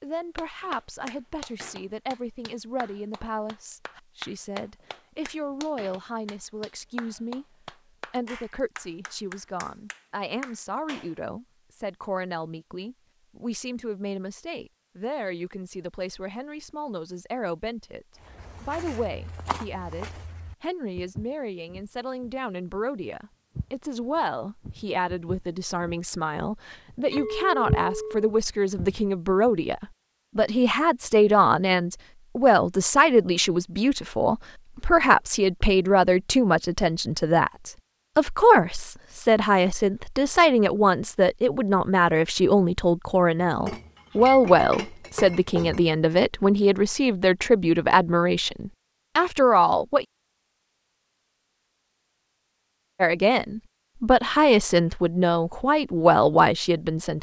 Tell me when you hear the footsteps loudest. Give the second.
28 s.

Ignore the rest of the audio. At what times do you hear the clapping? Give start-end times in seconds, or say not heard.
0.3-11.2.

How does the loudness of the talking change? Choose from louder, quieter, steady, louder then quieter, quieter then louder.
louder.